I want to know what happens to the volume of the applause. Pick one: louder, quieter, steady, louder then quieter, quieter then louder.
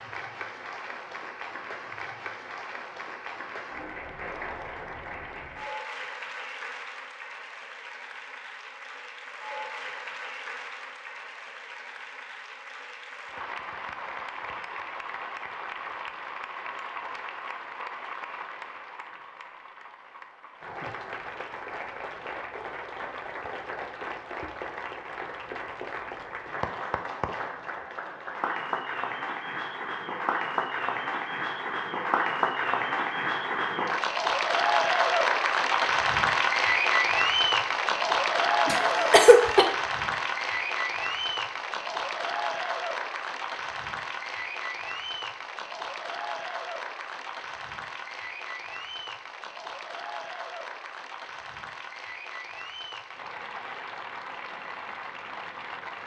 louder then quieter.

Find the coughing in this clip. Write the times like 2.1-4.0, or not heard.
38.6-39.6.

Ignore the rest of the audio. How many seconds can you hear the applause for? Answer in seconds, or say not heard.
56 s.